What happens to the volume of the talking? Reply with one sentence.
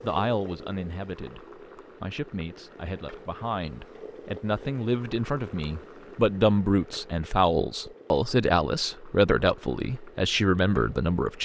The loudness of the talking goes up.